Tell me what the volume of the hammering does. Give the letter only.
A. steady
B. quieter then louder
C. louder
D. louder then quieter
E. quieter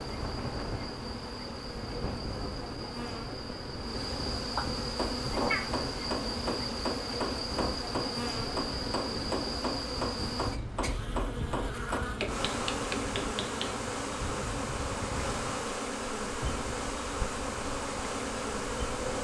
A.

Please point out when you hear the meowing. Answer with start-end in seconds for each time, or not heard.
4.5-5.7, 16.4-16.8.